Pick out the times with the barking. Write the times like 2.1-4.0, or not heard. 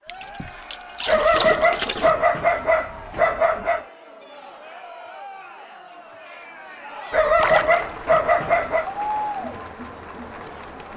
1.1-3.9, 7.1-8.8.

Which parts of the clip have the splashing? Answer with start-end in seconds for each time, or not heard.
0.1-2.1, 7.3-8.2.